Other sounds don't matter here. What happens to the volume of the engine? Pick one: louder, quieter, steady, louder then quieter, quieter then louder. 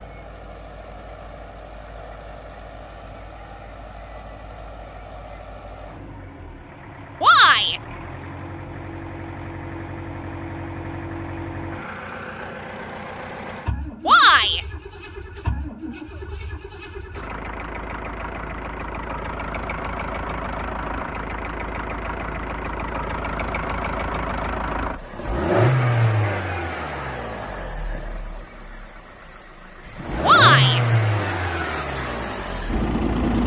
louder.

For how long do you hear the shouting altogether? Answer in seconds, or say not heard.
2 s.